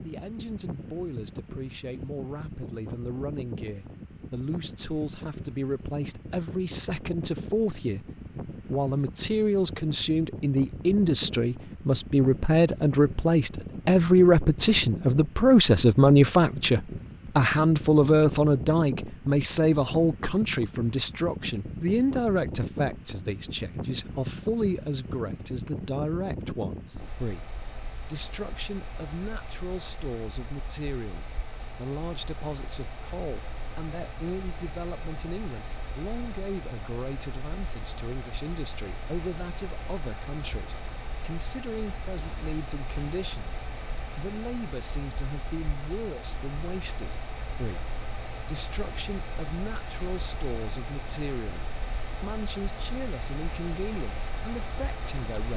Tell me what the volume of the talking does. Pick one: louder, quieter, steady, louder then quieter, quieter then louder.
louder then quieter.